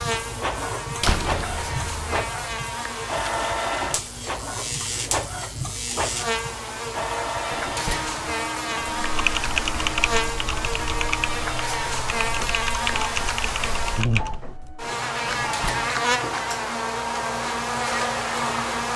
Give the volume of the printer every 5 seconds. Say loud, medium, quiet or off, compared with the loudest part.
loud, loud, medium, off.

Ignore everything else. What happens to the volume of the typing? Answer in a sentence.
The loudness of the typing goes down, then up.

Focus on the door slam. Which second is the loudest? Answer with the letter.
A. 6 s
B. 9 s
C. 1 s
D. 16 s
C.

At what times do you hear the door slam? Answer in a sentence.
You can hear the door slam from 1.0 to 2.2 s, from 7.5 to 8.2 s and from 15.2 to 15.9 s.